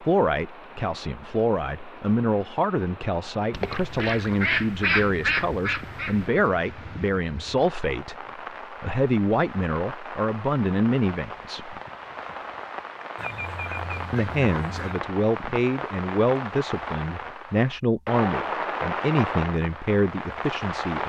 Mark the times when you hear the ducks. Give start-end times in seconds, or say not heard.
3.5-6.3, 13.2-15.0.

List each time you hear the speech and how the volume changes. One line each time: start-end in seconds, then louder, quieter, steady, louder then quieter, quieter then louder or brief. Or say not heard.
0.0-11.8 steady
14.1-21.0 steady.